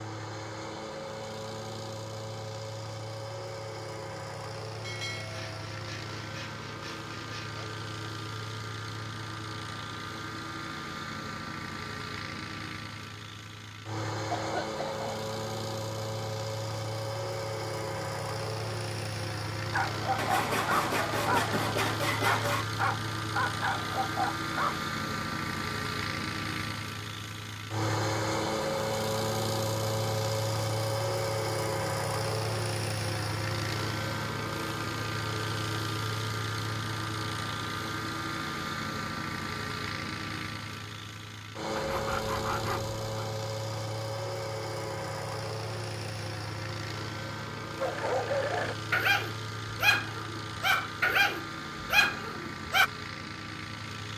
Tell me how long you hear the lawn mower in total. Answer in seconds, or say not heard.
54 s.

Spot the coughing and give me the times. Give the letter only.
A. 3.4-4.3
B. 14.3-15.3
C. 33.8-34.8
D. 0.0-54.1
B.